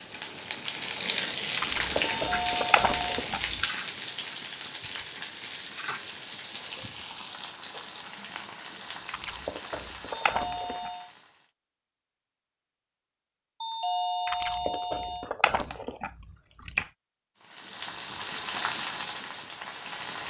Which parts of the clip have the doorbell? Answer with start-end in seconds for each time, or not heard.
2.1-3.2, 10.2-11.1, 13.6-15.3.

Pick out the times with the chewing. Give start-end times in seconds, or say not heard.
1.6-3.5, 9.1-10.9, 14.2-16.9.